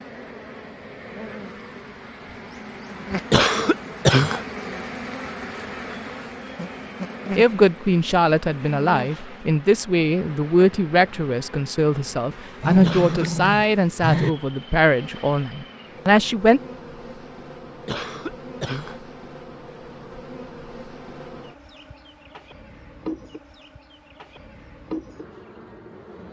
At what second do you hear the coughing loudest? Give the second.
4 s.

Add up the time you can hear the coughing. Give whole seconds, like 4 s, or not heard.
3 s.